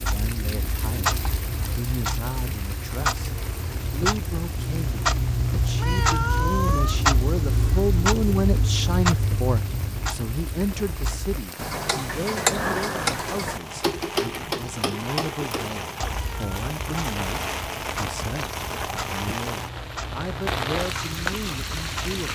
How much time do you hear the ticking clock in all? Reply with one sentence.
You can hear the ticking clock for 22 seconds altogether.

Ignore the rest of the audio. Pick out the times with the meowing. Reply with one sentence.
The meowing can be heard from 5.8 to 7.0 s and from 16.1 to 16.5 s.